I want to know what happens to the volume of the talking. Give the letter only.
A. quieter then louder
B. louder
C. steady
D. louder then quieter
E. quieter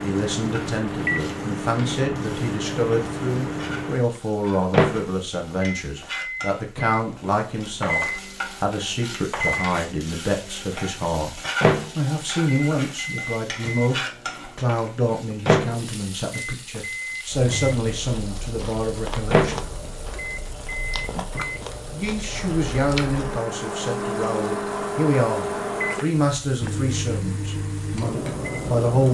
C.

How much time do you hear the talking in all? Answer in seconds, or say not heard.
27 s.